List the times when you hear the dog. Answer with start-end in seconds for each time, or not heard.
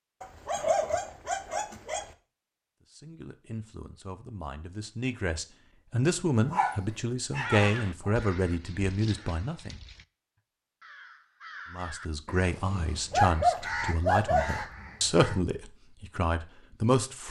0.2-2.0, 6.5-8.2, 13.1-14.7.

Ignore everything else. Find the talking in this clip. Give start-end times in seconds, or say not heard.
2.9-9.8, 11.7-17.2.